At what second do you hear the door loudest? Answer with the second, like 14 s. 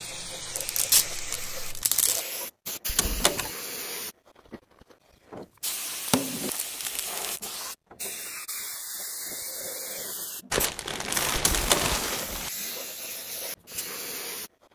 12 s.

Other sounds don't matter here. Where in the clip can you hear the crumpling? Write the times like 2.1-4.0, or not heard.
0.6-2.2, 5.7-7.4, 10.5-12.5.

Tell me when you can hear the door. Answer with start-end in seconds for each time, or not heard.
2.9-3.5, 11.4-12.0.